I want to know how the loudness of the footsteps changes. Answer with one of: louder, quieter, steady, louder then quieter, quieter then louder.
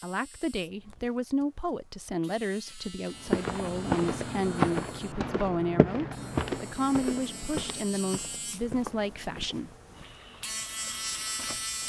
quieter.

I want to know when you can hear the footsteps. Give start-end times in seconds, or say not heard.
3.2-9.6.